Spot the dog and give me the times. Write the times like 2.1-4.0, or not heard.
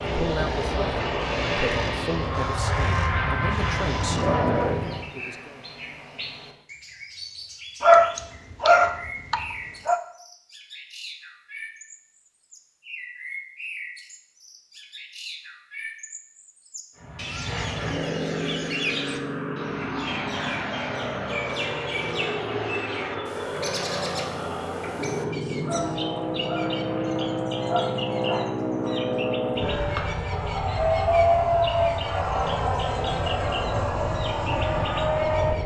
7.8-10.0, 25.6-28.5.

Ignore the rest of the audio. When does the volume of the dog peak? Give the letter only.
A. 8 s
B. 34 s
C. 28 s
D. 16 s
A.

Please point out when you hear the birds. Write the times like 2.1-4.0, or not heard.
0.0-35.6.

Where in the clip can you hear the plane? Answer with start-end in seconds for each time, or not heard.
0.0-5.1, 16.9-35.6.